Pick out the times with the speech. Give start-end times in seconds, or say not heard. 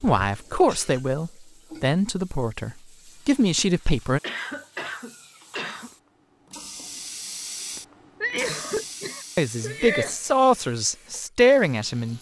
0.0-4.2, 9.3-12.1.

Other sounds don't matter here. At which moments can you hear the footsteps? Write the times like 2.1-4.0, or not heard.
not heard.